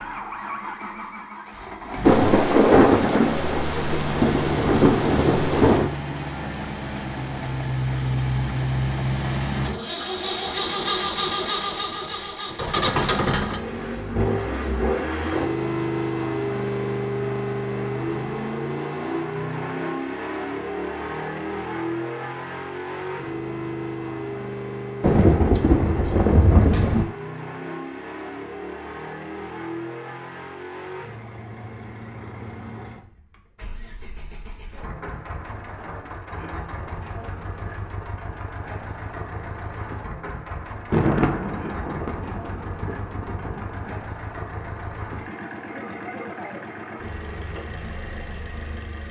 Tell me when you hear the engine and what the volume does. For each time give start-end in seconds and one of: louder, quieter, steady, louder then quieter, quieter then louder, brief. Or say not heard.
0.0-49.0 quieter.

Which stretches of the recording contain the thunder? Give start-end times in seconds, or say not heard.
2.0-5.9, 25.0-27.1, 40.9-44.0.